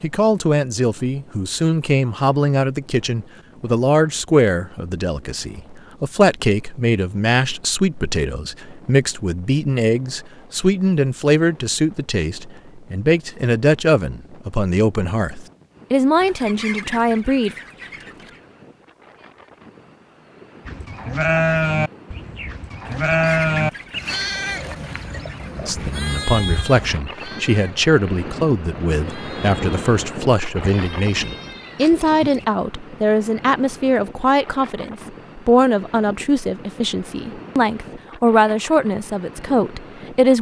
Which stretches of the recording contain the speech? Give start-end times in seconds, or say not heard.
0.0-17.6, 25.6-40.3.